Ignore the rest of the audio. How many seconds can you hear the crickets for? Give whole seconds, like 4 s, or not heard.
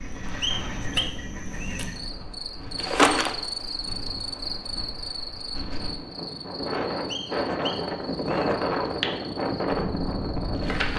11 s.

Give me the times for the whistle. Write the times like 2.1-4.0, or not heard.
0.4-1.8, 7.1-8.5.